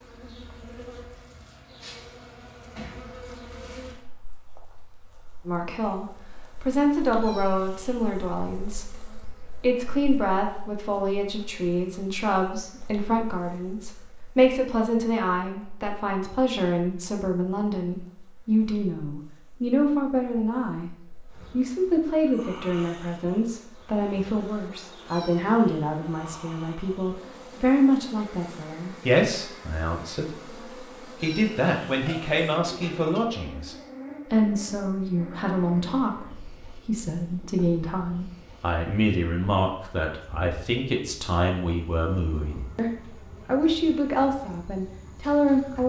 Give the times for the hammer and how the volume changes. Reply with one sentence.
The hammer can't be heard in this clip.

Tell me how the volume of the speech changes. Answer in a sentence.
The loudness of the speech stays about the same.